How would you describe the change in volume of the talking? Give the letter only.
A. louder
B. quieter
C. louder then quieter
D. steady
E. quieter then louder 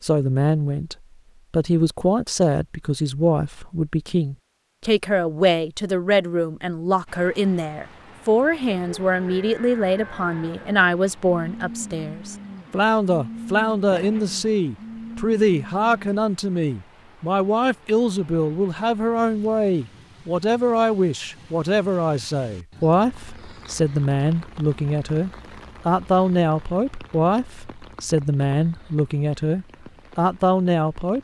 D.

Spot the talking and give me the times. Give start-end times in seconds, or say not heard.
0.0-31.1.